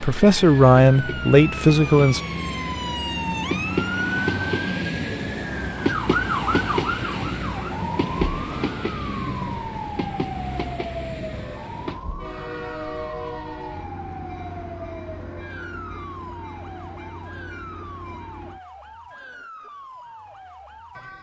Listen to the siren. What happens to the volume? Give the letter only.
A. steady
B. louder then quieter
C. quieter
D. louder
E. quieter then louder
C.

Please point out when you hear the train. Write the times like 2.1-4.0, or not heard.
0.0-18.6.